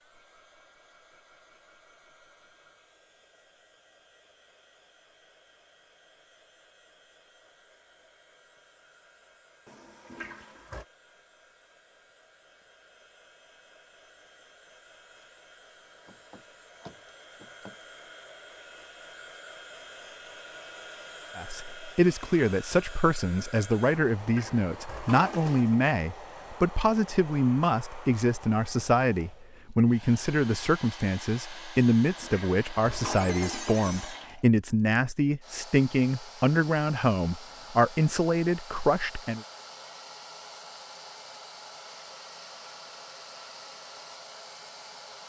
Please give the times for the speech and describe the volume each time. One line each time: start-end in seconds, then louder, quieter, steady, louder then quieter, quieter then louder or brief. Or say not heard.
21.4-39.4 steady.